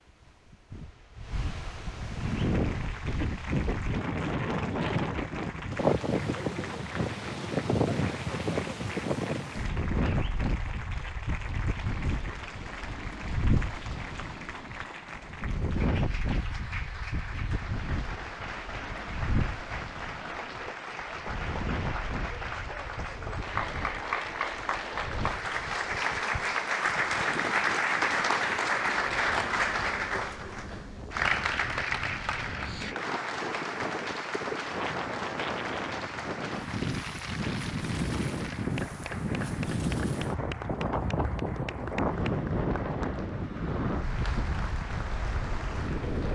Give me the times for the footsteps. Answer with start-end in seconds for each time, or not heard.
not heard.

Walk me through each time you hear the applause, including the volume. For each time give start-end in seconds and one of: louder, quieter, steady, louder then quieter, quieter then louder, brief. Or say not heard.
2.1-46.3 louder then quieter.